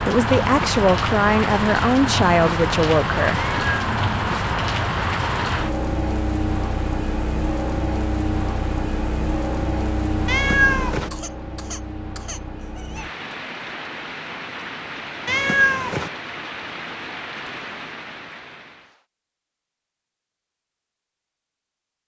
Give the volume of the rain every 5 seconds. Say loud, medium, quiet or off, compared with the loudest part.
loud, loud, medium, medium, off.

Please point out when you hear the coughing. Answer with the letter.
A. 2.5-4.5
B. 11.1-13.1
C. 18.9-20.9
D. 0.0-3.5
B.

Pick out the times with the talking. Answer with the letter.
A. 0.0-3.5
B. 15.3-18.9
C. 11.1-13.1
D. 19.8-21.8
A.